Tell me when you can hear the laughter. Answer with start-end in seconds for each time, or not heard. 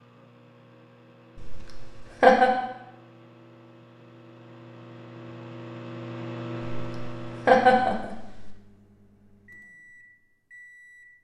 1.4-2.5, 6.8-8.5.